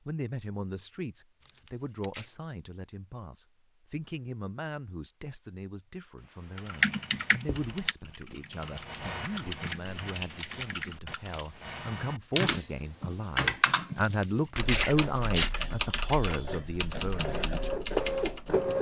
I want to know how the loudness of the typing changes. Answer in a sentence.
The volume of the typing goes up, then down.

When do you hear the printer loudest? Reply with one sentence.
The volume of the printer peaks at 18 seconds.